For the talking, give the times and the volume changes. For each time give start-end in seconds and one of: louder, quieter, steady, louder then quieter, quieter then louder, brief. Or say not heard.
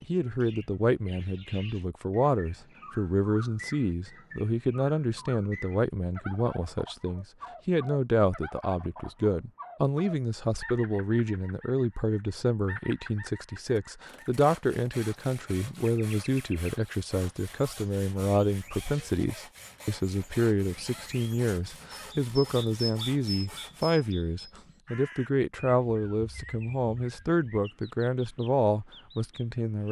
0.0-29.8 steady.